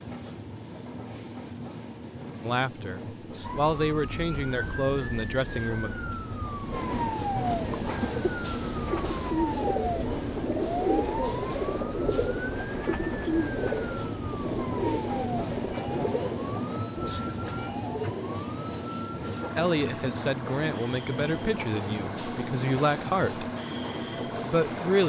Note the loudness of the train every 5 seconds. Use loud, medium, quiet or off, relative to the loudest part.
medium, loud, loud, loud, loud.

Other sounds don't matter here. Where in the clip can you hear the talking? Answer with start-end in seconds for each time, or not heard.
2.4-6.0, 19.6-23.5, 24.4-25.0.